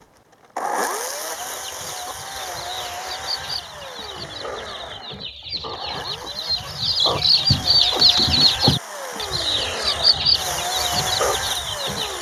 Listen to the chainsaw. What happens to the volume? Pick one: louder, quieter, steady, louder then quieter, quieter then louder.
quieter then louder.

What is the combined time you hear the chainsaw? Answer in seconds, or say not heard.
12 s.